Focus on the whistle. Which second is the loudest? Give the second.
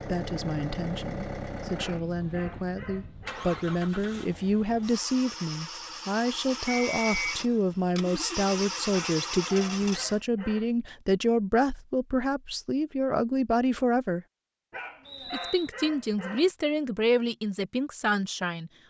7 s.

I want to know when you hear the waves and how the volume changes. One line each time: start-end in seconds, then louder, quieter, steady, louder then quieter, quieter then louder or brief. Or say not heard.
not heard.